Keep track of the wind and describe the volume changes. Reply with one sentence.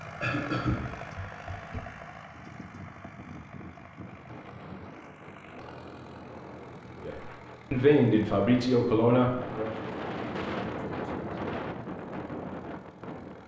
The volume of the wind goes up.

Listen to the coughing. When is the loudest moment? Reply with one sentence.
The volume of the coughing peaks at 1 second.